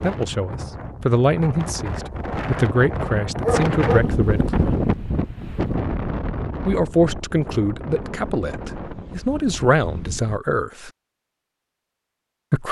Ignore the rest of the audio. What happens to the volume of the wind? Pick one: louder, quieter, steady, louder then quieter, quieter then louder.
louder then quieter.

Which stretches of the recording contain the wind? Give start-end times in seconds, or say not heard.
0.0-10.4.